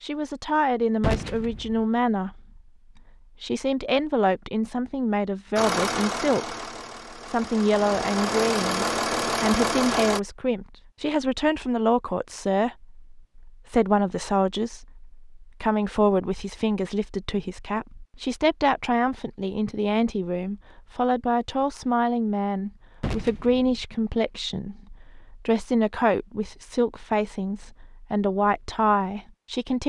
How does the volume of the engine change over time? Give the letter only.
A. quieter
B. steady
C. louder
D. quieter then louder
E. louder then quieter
D.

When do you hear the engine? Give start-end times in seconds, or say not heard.
5.5-10.2.